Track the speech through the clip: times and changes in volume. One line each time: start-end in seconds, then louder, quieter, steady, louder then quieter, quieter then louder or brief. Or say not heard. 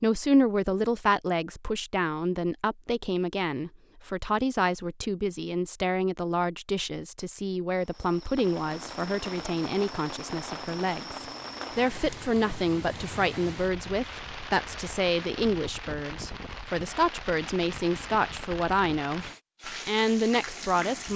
0.0-21.1 steady.